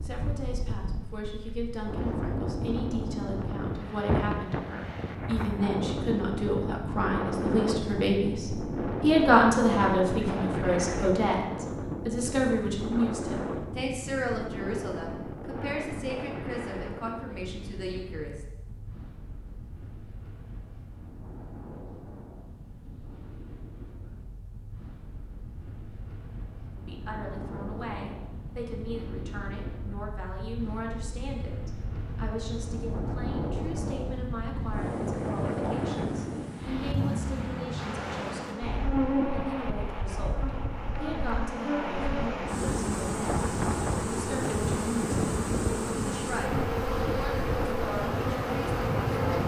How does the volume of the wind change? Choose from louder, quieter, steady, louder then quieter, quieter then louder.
quieter then louder.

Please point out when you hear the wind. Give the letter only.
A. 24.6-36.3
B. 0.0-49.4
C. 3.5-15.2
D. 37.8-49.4
B.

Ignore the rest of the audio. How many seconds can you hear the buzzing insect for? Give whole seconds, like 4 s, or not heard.
12 s.